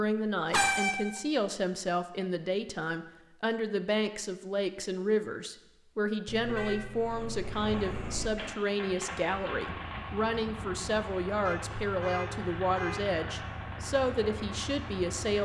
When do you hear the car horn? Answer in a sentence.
The car horn can be heard from 0.5 to 1.0 s, from 6.2 to 8.3 s and from 11.4 to 13.0 s.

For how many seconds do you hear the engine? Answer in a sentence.
You can hear the engine for 8 seconds altogether.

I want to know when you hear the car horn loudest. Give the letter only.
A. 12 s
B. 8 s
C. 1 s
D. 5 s
C.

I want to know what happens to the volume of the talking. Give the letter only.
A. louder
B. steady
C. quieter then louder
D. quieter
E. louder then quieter
B.